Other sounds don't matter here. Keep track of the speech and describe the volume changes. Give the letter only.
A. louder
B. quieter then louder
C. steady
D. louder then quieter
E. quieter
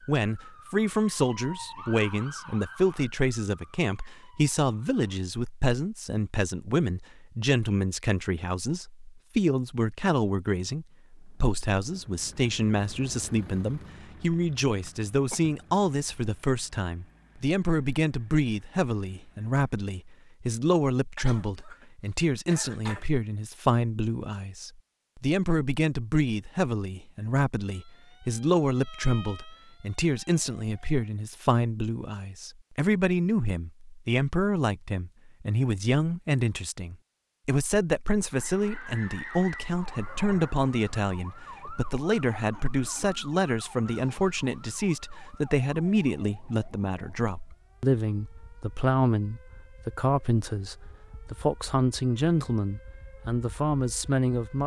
C.